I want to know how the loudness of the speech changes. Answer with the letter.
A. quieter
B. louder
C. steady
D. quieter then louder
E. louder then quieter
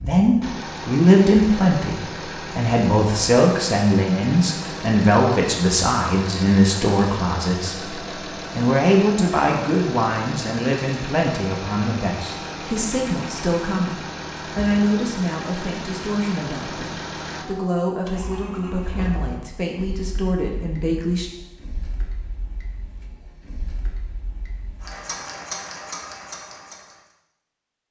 A.